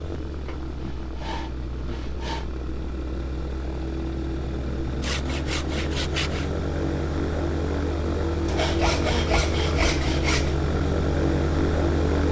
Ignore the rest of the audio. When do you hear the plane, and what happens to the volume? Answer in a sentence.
You can hear the plane from 0.0 to 12.2 s, getting louder.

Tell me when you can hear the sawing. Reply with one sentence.
You can hear the sawing from 0.5 to 2.5 s, from 5.0 to 6.5 s and from 8.4 to 10.6 s.